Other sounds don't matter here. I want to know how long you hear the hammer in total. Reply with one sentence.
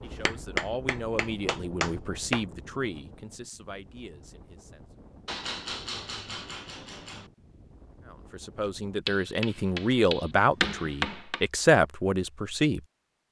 The hammer can be heard for 7 seconds in total.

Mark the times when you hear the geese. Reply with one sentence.
The geese can't be heard in this clip.